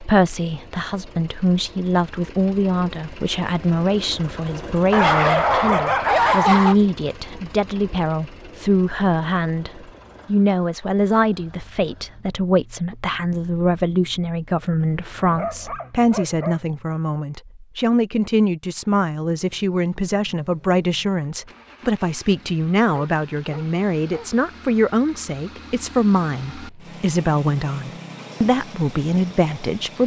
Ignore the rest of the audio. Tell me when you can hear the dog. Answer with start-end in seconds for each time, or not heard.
4.9-6.8, 14.8-16.6, 22.9-24.3.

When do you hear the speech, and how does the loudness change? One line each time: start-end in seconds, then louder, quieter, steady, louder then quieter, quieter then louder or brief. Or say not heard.
0.0-30.0 steady.